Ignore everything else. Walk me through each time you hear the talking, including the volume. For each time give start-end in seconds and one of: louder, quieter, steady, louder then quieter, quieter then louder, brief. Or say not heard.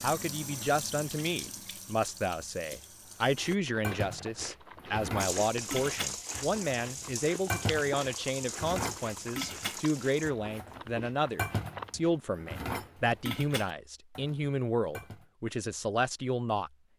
0.0-16.7 steady.